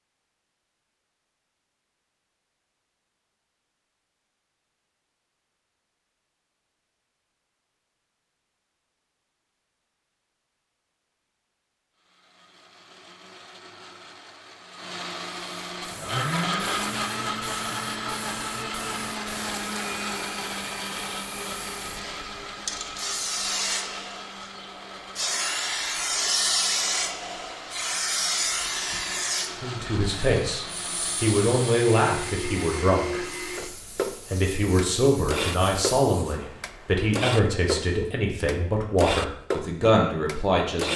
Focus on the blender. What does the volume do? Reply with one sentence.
The volume of the blender goes down, then up.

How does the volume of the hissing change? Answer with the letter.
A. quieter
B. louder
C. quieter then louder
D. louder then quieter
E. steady
D.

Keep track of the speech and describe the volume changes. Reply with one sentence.
The volume of the speech stays about the same.